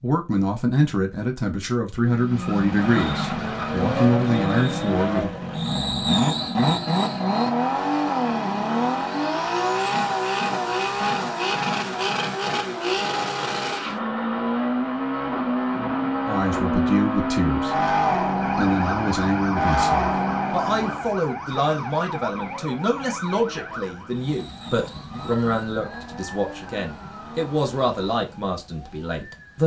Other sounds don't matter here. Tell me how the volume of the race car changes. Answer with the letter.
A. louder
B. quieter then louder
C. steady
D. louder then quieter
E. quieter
E.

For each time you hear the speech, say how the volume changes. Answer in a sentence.
The speech can be heard from 0.0 to 5.3 s, getting quieter then louder; briefly from 16.2 to 17.8 s; and from 18.6 to 29.6 s, at a steady volume.